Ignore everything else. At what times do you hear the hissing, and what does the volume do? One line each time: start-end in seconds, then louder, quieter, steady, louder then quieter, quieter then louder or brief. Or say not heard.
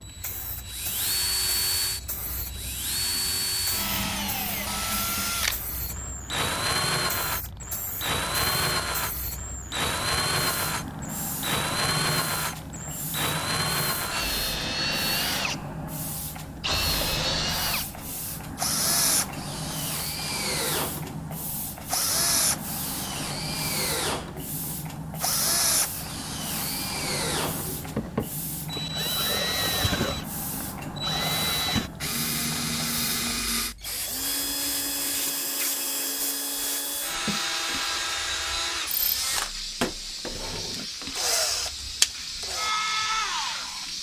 0.0-43.9 louder.